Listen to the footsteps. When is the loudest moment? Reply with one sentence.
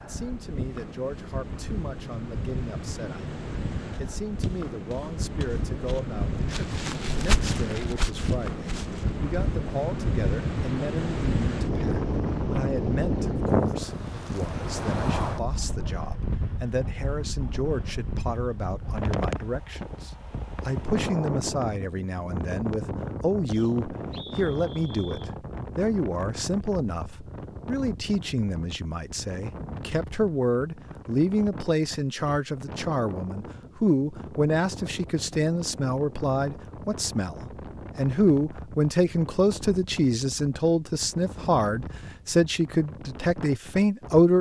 The volume of the footsteps peaks at 7 seconds.